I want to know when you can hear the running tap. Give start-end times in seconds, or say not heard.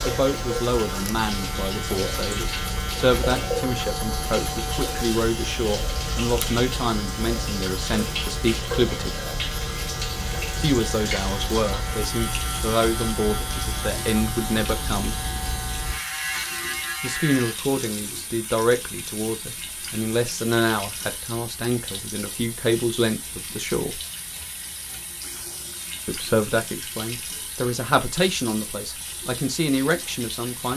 0.0-30.7.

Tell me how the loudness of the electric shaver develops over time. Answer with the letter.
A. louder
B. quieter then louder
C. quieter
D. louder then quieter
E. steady
E.